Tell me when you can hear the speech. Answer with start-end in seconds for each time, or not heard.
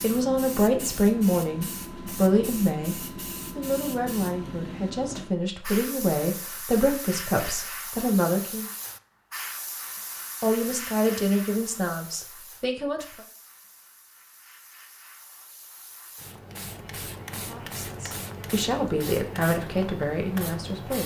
0.0-3.0, 3.5-8.7, 10.4-13.2, 17.3-21.0.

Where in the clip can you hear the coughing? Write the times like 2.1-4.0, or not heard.
not heard.